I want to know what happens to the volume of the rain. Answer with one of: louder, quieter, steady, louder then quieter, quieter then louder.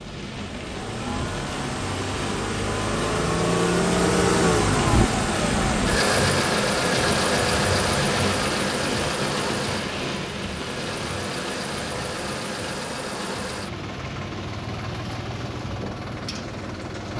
louder then quieter.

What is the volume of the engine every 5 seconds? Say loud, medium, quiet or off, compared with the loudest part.
loud, loud, medium, medium.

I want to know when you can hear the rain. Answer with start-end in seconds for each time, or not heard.
0.0-17.1.